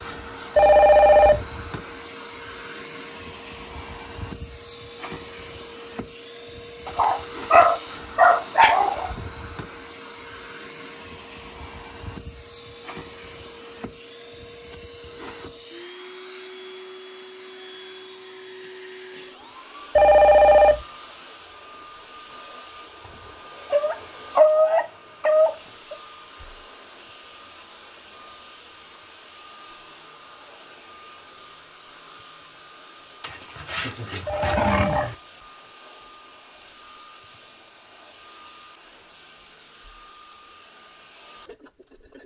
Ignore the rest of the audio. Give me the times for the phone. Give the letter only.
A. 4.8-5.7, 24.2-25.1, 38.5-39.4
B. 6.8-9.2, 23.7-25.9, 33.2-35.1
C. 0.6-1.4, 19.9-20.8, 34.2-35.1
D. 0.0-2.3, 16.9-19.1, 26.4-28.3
C.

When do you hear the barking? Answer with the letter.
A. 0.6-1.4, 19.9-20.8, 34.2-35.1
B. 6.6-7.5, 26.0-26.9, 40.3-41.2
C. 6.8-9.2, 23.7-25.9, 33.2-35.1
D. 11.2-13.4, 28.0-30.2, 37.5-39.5
C.